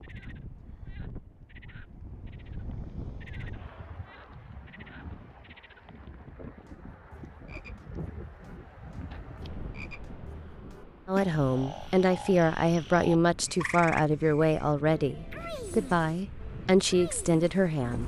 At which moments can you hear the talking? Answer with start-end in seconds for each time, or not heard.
11.1-18.0.